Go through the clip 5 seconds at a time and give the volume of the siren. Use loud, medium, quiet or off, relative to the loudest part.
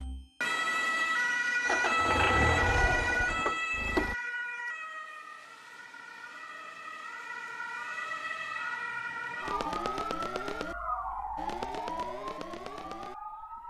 loud, medium, medium.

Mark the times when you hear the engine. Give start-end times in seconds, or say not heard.
1.6-4.2.